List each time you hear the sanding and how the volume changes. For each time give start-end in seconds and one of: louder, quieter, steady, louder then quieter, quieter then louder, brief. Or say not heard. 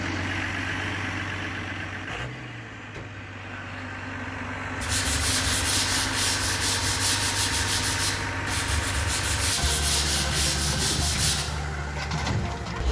4.8-11.4 steady.